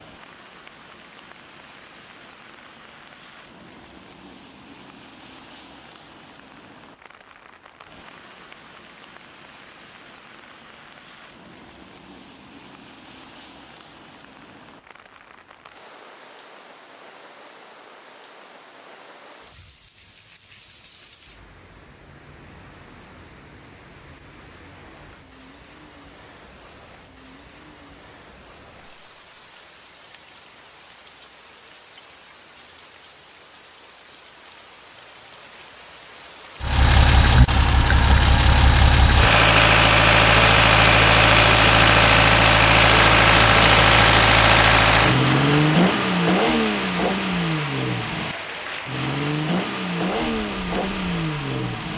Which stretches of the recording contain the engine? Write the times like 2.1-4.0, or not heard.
36.6-51.9.